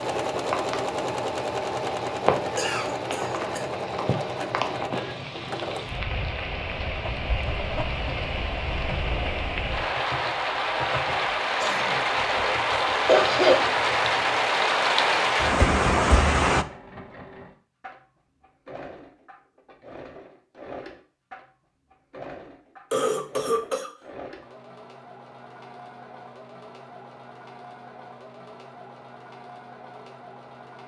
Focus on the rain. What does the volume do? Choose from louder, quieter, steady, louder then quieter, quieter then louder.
louder.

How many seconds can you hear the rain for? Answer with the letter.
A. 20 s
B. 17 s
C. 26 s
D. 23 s
B.